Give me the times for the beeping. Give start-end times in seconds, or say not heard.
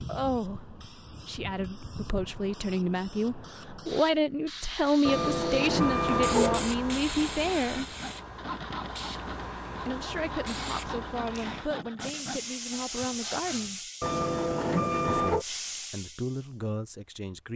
5.0-6.8, 14.0-15.4.